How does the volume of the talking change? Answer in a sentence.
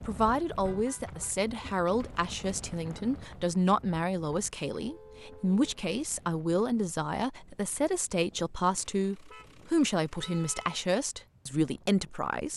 The loudness of the talking stays about the same.